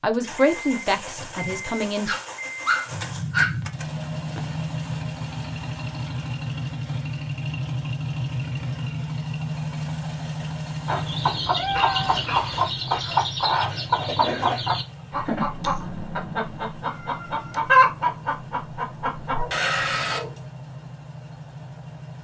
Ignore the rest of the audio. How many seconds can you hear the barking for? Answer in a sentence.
The barking can be heard for 4 seconds in total.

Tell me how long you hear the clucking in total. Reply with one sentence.
You can hear the clucking for 9 seconds altogether.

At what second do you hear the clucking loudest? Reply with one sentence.
The loudest moment of the clucking is at 18 seconds.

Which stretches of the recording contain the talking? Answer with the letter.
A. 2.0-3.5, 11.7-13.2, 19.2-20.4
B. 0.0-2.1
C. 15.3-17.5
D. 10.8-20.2
B.